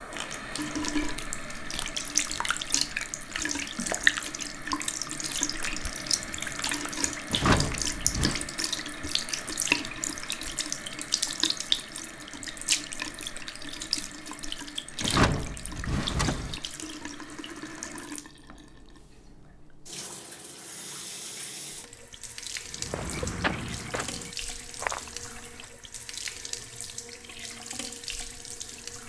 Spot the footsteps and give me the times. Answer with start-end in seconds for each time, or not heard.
22.8-25.9.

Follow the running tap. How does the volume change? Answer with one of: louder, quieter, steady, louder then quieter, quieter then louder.
quieter.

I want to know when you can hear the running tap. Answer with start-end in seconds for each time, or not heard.
0.0-29.0.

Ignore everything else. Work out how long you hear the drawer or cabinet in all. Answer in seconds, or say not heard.
3 s.